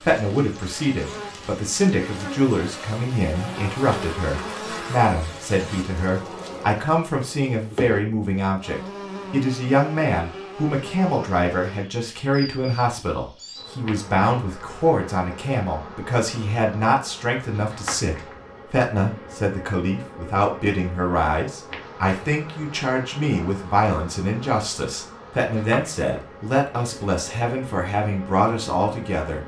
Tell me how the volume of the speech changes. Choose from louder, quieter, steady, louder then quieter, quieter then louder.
steady.